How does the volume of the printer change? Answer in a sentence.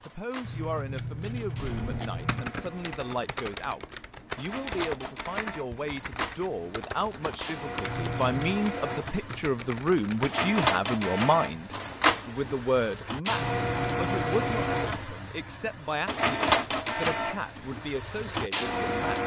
The loudness of the printer goes up.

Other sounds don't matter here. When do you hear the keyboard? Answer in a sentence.
You can hear the keyboard from 1.6 to 10.3 s.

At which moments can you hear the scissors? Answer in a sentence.
You can hear the scissors from 0.4 to 2.5 s, from 7.8 to 8.6 s and from 13.2 to 15.0 s.